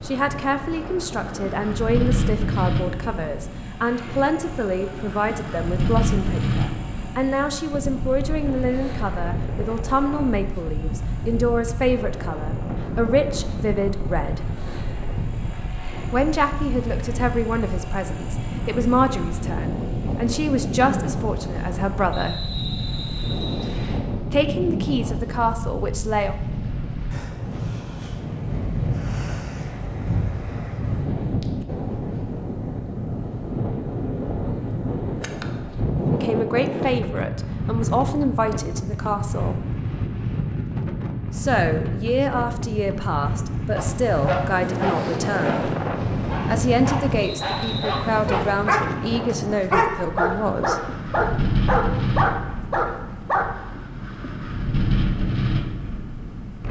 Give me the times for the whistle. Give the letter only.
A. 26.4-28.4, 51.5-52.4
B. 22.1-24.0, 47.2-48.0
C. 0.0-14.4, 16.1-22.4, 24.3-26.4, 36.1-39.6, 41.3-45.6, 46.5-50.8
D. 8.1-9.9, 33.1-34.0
B.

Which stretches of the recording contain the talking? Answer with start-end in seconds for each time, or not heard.
0.0-14.4, 16.1-22.4, 24.3-26.4, 36.1-39.6, 41.3-45.6, 46.5-50.8.